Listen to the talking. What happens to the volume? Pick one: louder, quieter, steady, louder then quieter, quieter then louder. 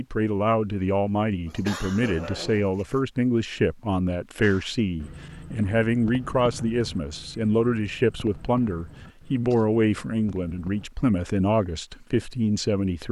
steady.